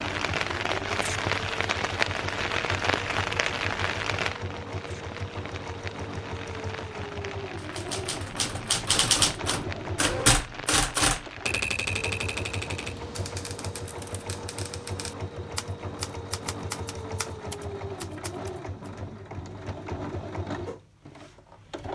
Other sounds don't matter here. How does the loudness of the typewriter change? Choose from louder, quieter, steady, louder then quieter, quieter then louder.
quieter.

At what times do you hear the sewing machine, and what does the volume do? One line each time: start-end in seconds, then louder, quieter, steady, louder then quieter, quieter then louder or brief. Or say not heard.
0.0-21.9 steady.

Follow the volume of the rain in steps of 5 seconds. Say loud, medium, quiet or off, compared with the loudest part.
loud, quiet, quiet, off, off.